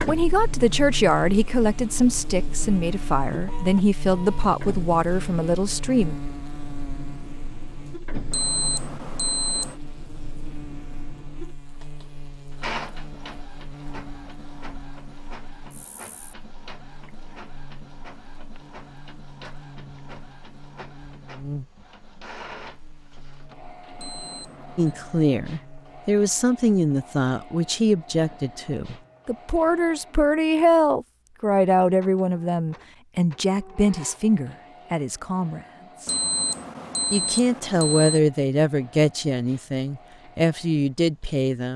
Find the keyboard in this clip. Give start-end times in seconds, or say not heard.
not heard.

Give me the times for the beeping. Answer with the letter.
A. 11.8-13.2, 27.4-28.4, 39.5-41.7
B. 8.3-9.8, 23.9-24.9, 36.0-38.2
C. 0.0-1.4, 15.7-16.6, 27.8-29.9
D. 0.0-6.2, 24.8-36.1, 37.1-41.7
B.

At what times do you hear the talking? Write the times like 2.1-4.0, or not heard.
0.0-6.2, 24.8-36.1, 37.1-41.7.